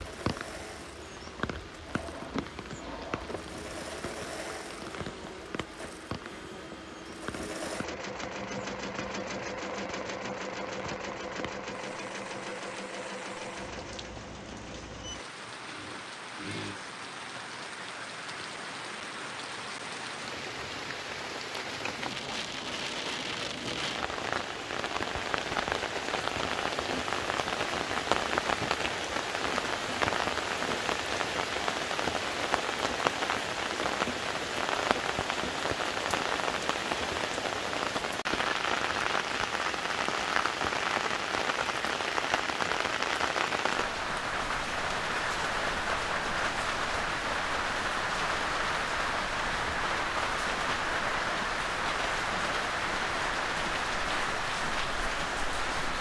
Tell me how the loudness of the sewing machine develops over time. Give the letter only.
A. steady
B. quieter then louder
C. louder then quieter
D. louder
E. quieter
C.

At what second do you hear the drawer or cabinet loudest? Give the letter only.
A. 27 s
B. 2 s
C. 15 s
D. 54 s
B.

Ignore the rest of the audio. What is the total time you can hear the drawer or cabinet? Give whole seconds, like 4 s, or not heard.
2 s.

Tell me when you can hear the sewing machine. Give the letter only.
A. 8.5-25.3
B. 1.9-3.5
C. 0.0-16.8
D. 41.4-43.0
C.